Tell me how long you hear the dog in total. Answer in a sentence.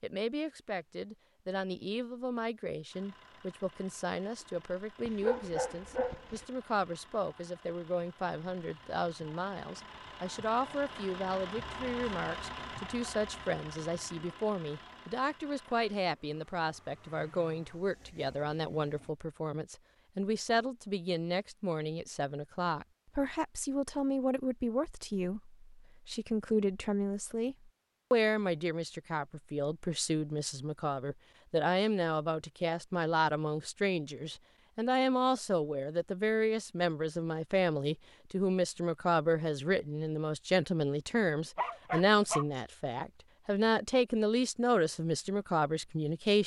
The dog can be heard for 2 seconds in total.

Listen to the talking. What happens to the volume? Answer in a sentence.
The volume of the talking goes up.